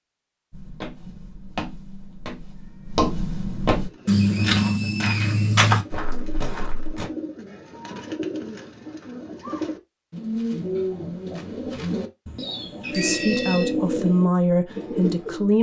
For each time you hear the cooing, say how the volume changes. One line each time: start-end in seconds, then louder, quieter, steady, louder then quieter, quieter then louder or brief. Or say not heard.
3.8-15.5 louder.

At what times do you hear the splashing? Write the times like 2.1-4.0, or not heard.
not heard.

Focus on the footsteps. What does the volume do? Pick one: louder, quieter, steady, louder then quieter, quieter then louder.
louder.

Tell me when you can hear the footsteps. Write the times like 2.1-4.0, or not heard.
0.5-7.1.